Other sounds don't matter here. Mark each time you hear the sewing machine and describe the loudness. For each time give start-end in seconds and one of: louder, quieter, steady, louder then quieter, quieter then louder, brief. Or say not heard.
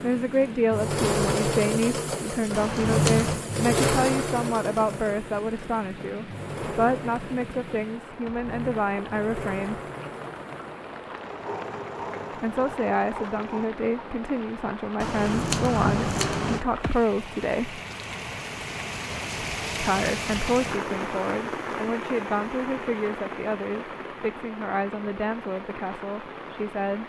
0.0-13.7 quieter.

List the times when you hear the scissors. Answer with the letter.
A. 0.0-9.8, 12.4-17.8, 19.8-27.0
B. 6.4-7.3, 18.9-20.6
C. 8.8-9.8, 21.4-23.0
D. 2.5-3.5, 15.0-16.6
D.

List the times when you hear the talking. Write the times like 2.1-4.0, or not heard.
0.0-9.8, 12.4-17.8, 19.8-27.0.